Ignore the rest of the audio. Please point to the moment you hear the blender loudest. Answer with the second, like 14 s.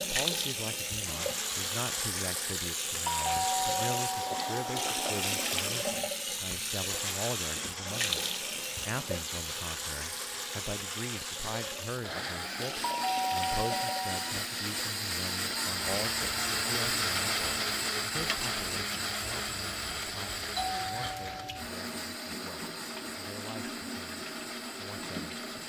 17 s.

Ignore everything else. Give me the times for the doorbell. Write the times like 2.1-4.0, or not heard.
3.0-5.5, 12.8-14.3, 20.6-21.6.